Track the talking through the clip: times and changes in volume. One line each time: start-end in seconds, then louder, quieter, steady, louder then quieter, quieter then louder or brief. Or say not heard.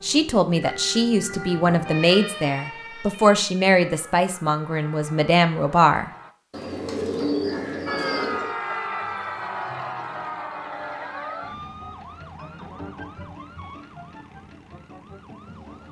0.0-6.1 steady.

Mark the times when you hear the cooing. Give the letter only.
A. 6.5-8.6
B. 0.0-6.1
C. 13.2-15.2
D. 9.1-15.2
A.